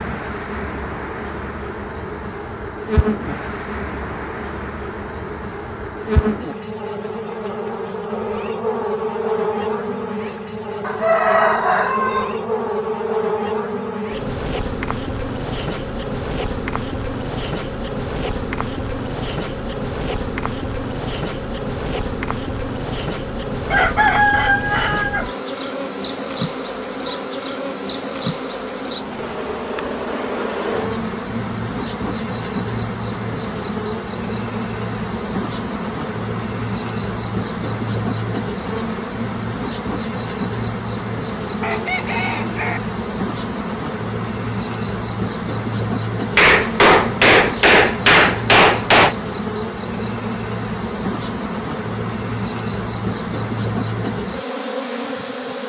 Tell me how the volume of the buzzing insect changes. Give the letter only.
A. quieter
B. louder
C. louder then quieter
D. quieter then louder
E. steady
E.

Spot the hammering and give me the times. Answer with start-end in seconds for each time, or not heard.
46.4-49.1.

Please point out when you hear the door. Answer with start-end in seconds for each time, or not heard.
not heard.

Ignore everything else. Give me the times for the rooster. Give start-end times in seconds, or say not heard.
10.8-12.3, 23.7-25.2, 41.6-42.8.